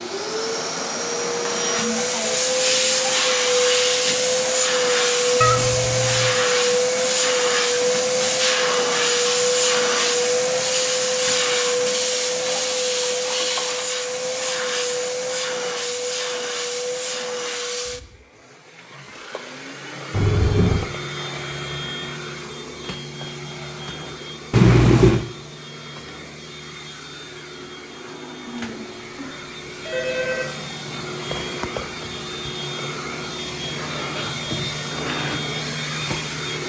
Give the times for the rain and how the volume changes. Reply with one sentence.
The rain can't be heard in this clip.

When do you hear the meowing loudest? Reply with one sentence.
The loudest moment of the meowing is at 25 seconds.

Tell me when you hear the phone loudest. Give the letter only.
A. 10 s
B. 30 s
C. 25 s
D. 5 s
B.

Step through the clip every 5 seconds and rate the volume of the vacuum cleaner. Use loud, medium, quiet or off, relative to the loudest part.
loud, loud, loud, medium, quiet, quiet, medium, medium.